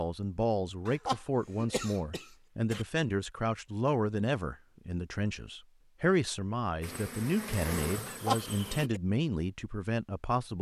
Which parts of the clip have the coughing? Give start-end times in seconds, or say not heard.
0.8-2.9, 8.1-9.0.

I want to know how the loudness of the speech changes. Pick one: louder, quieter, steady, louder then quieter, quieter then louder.
steady.